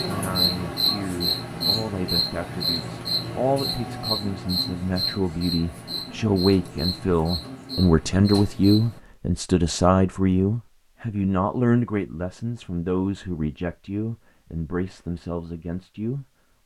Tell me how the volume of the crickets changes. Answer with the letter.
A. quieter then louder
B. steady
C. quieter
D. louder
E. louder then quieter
C.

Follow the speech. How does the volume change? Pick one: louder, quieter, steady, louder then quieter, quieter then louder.
louder then quieter.